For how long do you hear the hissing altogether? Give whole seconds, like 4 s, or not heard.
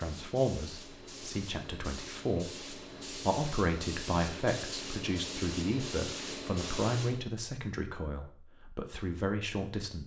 7 s.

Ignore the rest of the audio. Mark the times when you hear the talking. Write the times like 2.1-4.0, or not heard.
0.0-10.0.